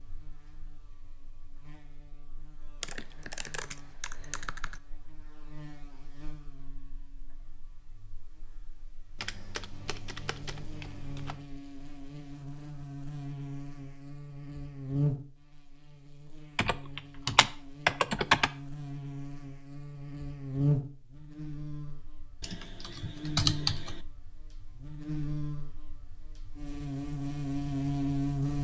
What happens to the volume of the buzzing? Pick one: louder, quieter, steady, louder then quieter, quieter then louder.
louder.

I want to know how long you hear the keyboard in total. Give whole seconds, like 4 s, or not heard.
8 s.